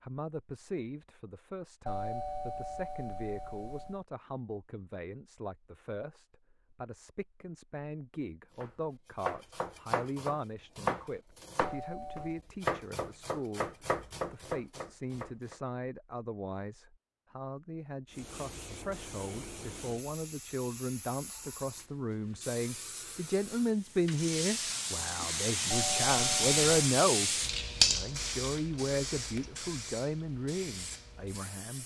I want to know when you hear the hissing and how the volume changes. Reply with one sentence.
You can hear the hissing from 18.1 to 31.8 s, getting louder then quieter.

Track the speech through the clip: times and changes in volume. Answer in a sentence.
The speech can be heard from 0.0 to 31.8 s, getting louder.